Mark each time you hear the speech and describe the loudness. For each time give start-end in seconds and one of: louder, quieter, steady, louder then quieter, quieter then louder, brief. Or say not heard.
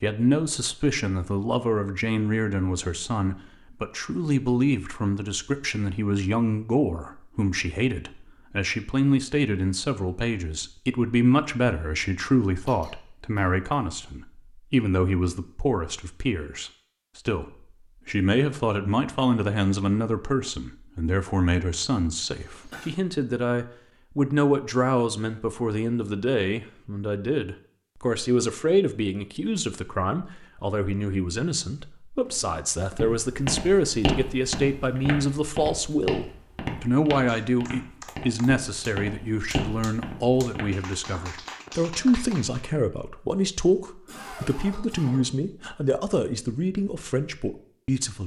0.0-48.2 steady.